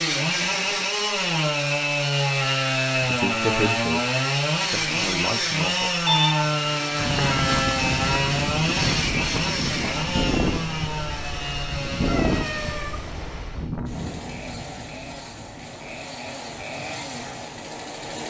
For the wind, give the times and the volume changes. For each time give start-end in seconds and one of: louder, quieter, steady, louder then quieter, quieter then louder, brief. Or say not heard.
7.0-18.2 quieter.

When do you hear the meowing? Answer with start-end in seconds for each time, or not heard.
6.0-7.2, 12.1-12.9.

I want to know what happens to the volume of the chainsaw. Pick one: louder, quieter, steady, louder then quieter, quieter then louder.
quieter.